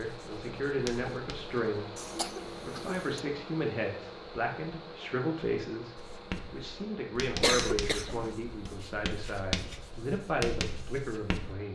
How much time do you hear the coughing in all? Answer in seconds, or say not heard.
2 s.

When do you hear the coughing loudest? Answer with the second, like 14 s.
8 s.